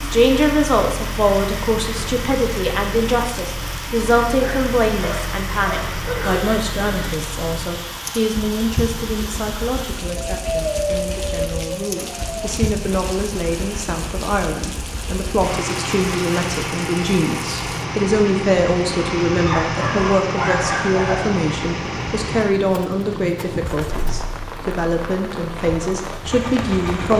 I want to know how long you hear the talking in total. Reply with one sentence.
You can hear the talking for 27 seconds altogether.